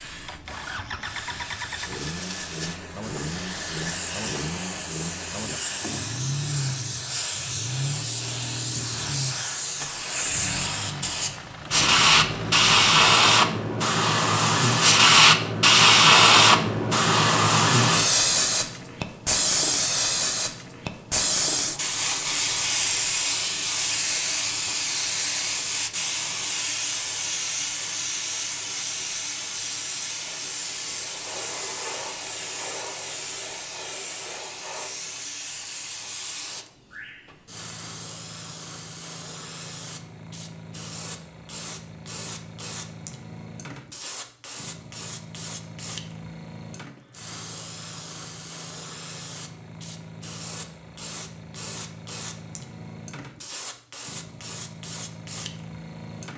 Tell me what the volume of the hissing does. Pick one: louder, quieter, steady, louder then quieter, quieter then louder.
louder then quieter.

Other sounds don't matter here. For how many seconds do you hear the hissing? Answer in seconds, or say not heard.
56 s.